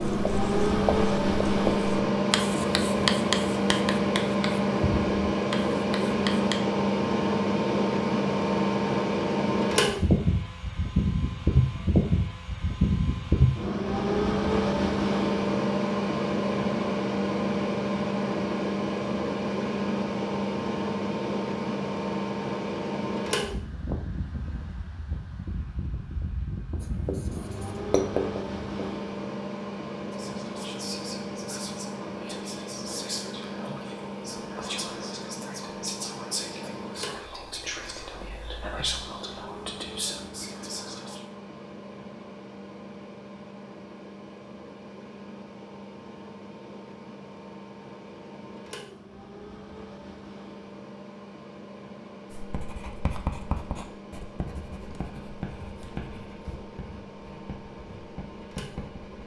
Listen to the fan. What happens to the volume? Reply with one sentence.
The loudness of the fan goes down.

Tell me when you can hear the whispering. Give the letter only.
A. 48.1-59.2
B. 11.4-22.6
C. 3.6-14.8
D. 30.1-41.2
D.